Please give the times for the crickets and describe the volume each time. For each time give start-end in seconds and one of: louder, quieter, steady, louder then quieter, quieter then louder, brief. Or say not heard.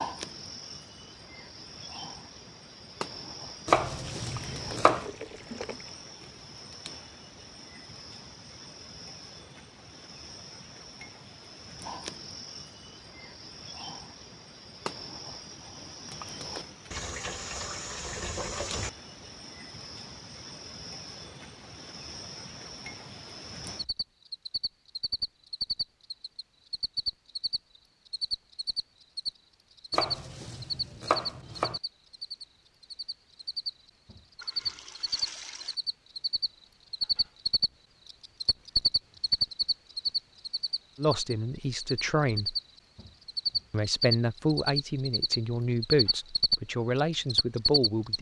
0.0-48.1 louder.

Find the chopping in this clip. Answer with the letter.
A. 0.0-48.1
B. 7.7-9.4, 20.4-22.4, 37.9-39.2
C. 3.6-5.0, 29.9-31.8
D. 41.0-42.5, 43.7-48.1
C.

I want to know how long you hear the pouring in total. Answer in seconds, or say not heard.
5 s.